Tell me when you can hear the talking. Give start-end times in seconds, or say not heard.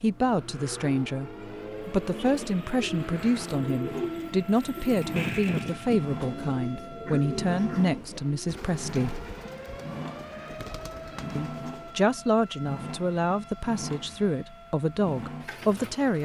0.0-9.2, 11.3-16.1.